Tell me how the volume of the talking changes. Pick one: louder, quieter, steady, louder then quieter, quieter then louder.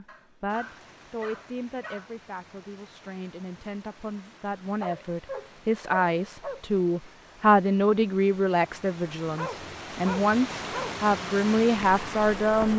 louder.